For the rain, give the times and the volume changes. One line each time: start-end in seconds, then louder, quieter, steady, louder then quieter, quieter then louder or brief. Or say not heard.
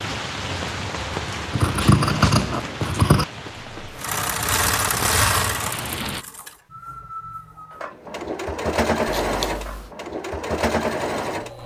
0.0-6.2 quieter then louder.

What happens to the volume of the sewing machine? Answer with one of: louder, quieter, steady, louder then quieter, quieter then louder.
quieter then louder.